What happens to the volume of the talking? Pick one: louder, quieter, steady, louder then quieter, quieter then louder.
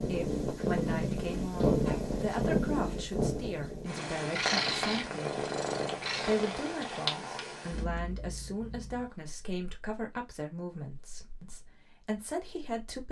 steady.